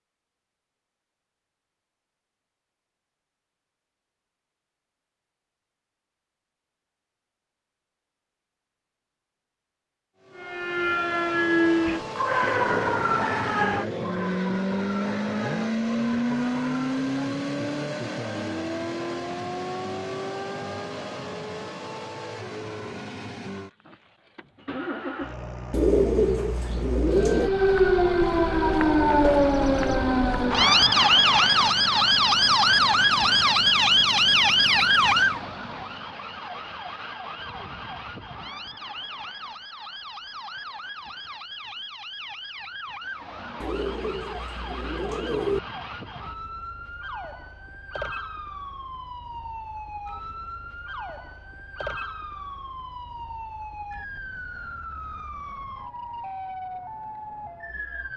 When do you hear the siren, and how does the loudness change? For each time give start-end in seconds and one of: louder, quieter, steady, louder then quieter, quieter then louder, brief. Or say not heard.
10.3-17.0 quieter
27.2-58.1 quieter.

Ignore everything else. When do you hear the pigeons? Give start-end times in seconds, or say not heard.
25.7-27.5, 43.6-45.6.